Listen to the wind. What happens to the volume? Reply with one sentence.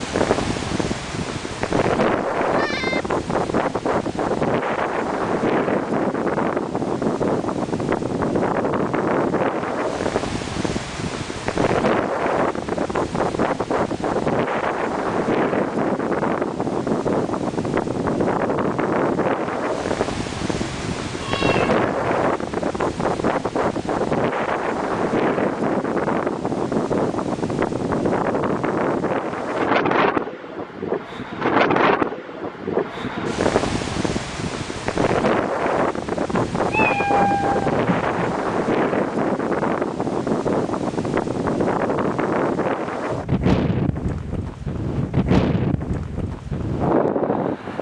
The volume of the wind stays about the same.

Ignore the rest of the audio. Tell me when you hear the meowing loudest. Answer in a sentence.
The volume of the meowing peaks at 37 seconds.